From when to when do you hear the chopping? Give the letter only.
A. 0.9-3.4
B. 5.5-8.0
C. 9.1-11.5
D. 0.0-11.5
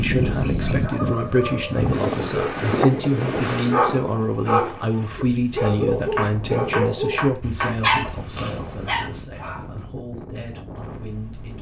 B.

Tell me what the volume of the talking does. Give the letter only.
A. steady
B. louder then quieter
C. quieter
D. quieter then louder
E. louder
C.